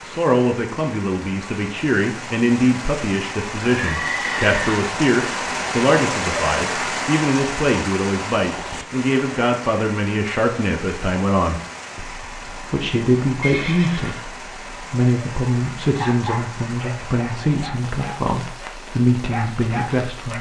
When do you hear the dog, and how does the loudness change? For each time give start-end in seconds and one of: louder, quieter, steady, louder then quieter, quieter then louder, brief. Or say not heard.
15.4-20.3 quieter then louder.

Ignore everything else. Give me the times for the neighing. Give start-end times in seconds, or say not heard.
3.8-4.8, 13.4-14.3.